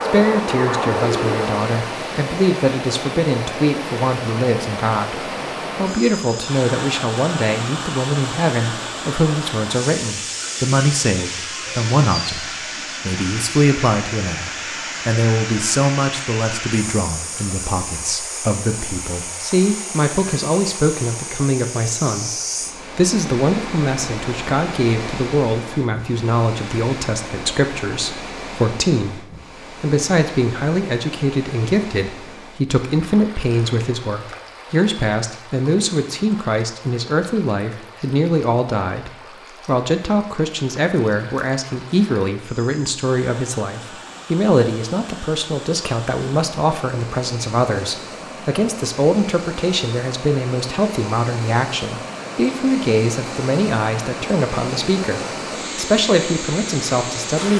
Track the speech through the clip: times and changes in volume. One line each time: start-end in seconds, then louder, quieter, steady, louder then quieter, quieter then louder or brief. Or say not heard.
0.1-57.5 steady.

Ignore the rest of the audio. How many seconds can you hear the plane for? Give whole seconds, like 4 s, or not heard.
2 s.